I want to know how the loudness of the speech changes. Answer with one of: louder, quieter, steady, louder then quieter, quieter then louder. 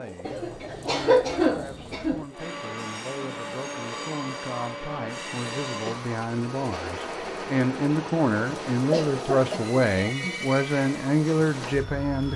louder.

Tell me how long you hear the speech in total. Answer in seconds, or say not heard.
12 s.